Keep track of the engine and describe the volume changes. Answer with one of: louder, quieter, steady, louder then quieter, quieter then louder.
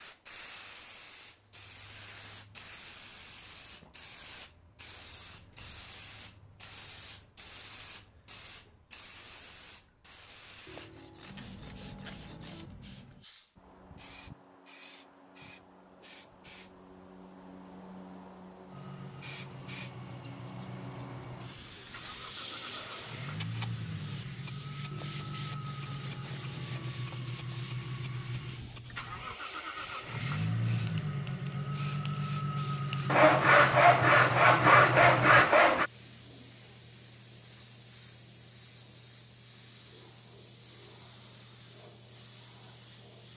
louder.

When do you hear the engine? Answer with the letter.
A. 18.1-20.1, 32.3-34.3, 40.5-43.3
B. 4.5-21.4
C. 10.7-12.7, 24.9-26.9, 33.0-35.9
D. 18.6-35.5
D.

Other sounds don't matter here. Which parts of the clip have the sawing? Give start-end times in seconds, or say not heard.
10.7-12.7, 24.9-26.9, 33.0-35.9.